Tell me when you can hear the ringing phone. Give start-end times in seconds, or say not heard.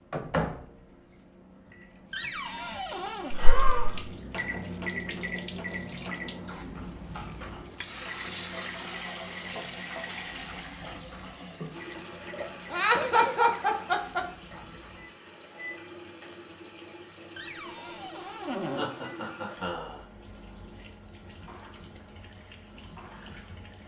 not heard.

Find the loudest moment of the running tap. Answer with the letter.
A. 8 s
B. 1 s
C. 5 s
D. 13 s
A.